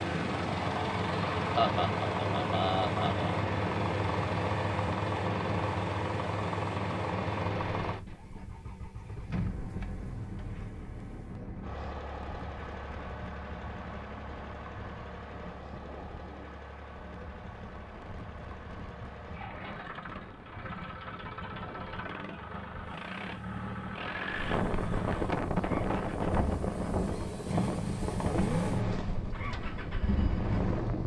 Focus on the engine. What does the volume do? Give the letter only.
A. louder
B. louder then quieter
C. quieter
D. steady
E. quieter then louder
E.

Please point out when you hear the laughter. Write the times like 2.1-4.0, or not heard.
1.6-3.4.